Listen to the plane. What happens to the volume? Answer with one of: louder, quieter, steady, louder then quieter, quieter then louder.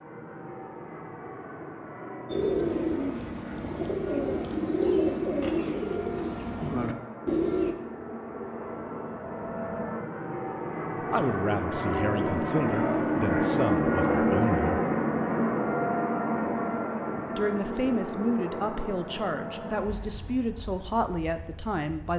louder then quieter.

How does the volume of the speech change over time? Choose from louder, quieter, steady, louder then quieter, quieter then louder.
steady.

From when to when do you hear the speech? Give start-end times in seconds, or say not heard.
11.0-14.8, 17.4-22.1.